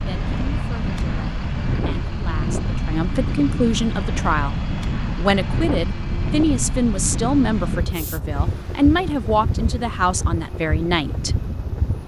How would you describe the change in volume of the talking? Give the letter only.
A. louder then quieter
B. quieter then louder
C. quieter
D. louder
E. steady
D.